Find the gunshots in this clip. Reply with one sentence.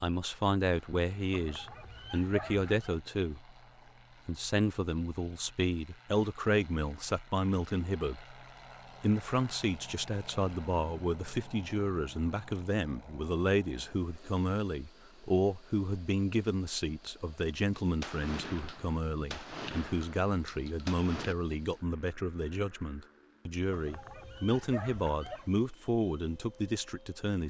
You can hear the gunshots from 18.0 to 21.4 s.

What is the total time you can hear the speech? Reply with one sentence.
You can hear the speech for 26 seconds altogether.